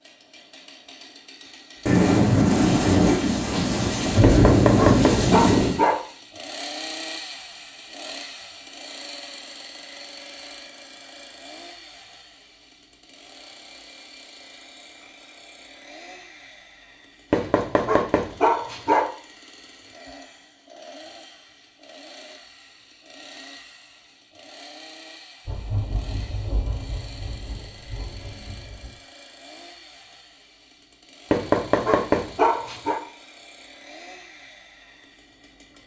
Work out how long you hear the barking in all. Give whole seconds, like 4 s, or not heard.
5 s.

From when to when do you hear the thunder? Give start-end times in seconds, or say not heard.
1.9-5.8, 25.4-28.9.